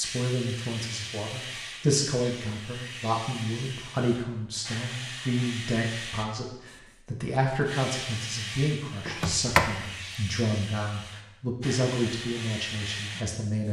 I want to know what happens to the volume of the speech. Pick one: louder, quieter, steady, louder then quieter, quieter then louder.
steady.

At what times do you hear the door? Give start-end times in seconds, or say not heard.
9.1-9.8.